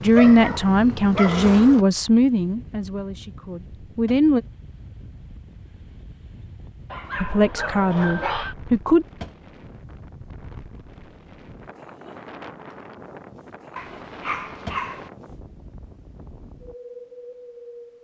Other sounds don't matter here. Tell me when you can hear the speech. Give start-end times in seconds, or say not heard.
0.0-4.4, 7.2-9.1.